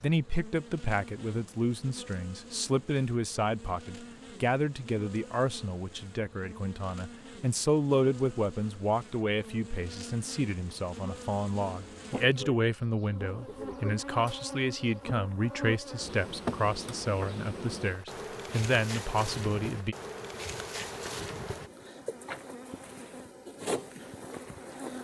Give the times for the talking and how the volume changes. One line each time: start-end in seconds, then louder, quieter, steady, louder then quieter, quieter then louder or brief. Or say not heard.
0.0-19.9 steady.